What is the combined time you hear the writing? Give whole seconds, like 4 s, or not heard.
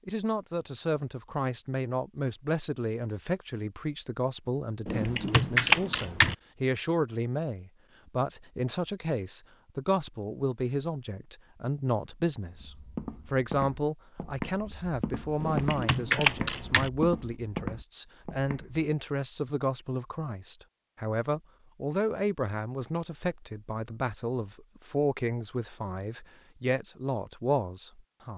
not heard.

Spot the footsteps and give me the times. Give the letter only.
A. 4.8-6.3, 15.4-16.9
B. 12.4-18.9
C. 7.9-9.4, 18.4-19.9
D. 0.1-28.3
B.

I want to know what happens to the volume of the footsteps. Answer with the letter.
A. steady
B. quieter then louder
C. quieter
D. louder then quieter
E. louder
A.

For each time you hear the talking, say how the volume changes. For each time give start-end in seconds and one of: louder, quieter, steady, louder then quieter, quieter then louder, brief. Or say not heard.
0.1-28.3 steady.